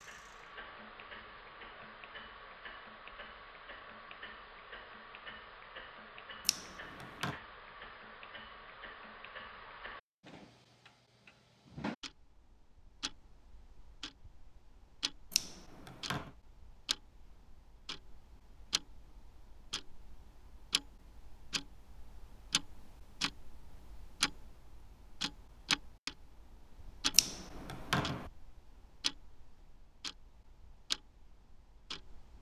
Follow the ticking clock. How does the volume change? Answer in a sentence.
The loudness of the ticking clock goes up.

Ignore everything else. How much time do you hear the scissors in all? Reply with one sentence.
You can hear the scissors for 3 seconds altogether.